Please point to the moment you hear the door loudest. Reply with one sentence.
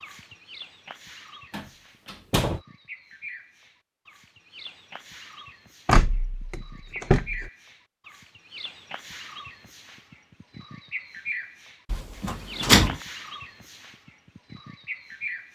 The loudest moment of the door is at 13 seconds.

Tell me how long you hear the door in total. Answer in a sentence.
You can hear the door for 4 seconds altogether.